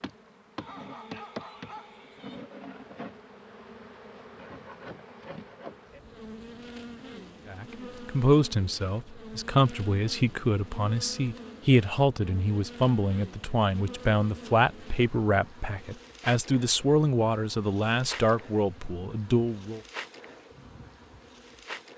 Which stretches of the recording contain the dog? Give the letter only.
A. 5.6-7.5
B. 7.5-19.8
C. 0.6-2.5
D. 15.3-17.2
C.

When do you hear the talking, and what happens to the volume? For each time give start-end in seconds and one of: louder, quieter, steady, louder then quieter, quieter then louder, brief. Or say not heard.
7.5-19.8 steady.